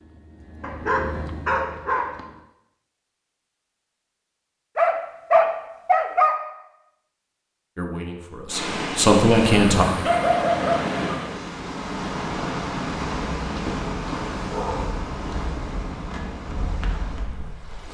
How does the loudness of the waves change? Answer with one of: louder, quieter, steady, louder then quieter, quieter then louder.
quieter.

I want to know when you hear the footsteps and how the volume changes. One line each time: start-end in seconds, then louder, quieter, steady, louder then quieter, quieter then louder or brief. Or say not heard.
not heard.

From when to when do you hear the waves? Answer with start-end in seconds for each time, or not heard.
8.4-17.8.